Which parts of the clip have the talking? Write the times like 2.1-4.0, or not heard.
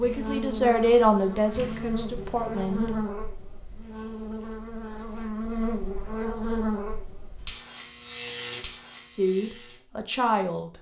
0.0-2.9, 9.2-10.7.